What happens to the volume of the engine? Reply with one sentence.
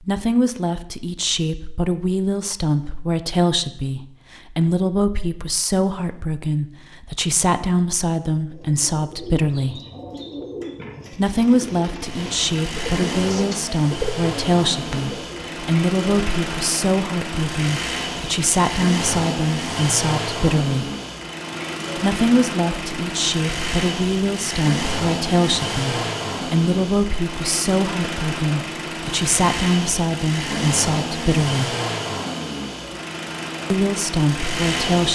The loudness of the engine stays about the same.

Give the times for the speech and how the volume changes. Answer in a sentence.
The speech can be heard from 0.0 to 9.8 s, at a steady volume; from 11.1 to 20.9 s, at a steady volume; from 21.9 to 31.8 s, at a steady volume; and briefly from 33.7 to 35.0 s.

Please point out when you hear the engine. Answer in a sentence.
The engine can be heard from 12.0 to 35.0 s.